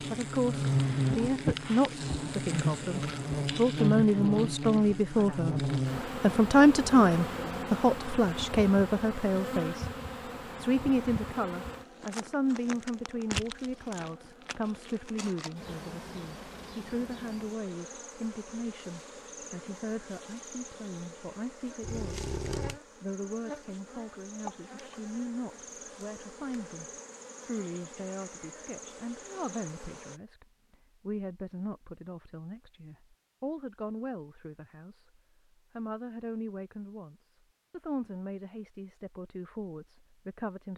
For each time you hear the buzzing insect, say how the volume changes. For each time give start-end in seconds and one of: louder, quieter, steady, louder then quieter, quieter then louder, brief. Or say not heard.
0.0-30.2 quieter.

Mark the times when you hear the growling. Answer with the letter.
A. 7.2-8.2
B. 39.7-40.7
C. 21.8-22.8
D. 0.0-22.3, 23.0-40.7
C.